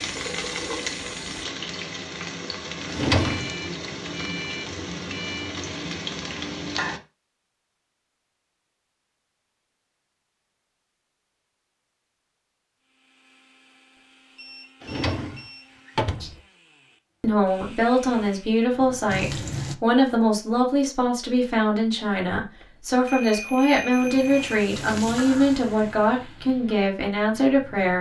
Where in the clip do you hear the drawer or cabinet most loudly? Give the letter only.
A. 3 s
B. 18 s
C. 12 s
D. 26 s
A.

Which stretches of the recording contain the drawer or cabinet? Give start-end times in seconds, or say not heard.
2.9-3.5, 14.8-16.4, 24.6-25.2.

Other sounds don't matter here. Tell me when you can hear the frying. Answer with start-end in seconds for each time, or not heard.
0.0-7.0, 18.1-19.8, 23.9-27.9.